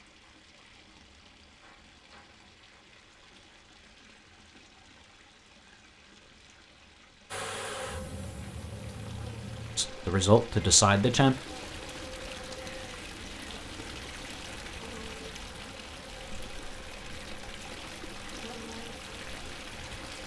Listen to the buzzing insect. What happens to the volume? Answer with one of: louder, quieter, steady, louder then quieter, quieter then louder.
quieter.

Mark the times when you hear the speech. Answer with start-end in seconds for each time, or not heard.
9.8-11.3.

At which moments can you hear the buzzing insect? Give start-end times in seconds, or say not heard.
7.3-20.2.